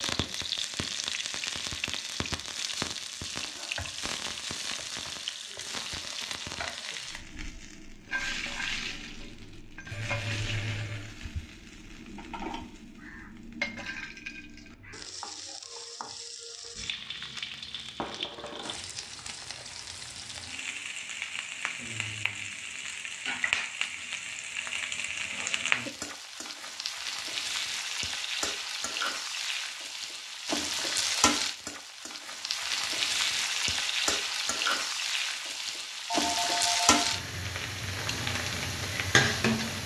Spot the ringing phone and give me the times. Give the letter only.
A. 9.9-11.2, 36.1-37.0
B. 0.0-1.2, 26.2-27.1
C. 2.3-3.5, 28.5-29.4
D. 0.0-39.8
A.